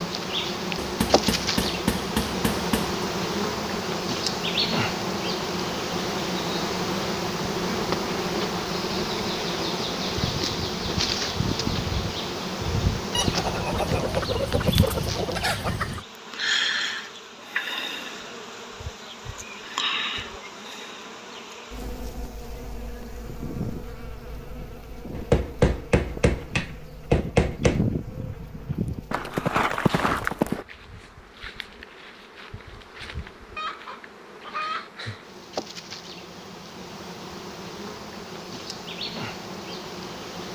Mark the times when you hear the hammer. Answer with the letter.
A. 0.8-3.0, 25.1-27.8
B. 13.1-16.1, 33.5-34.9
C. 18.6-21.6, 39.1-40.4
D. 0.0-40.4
A.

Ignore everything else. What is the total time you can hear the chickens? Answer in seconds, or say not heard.
4 s.